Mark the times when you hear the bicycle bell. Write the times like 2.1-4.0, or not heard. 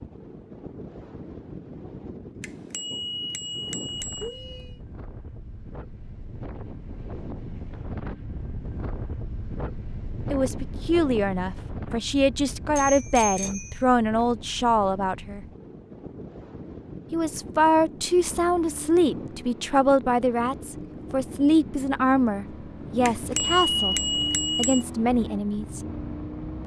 2.4-4.7, 12.8-13.8, 23.1-24.9.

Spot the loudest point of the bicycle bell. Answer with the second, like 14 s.
24 s.